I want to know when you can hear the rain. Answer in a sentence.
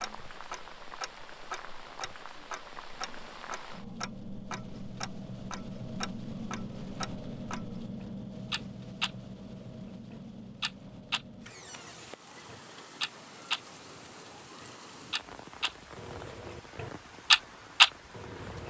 You can hear the rain from 0.0 to 18.6 s.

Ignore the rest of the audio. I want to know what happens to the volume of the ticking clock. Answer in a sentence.
The volume of the ticking clock goes up.